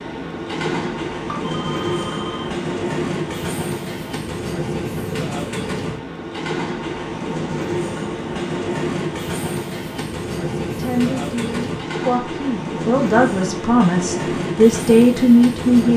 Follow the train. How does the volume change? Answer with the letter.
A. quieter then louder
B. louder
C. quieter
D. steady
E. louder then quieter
D.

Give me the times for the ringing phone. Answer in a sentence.
The ringing phone can be heard from 1.3 to 2.5 s.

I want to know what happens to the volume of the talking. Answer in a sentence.
The loudness of the talking goes up.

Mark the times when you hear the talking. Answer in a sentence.
The talking can be heard from 10.8 to 15.9 s.